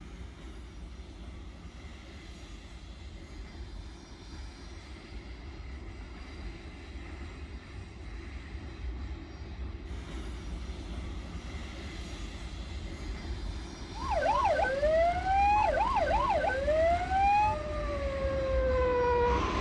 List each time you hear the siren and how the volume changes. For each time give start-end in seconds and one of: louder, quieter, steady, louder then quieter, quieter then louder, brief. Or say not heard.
13.9-19.5 steady.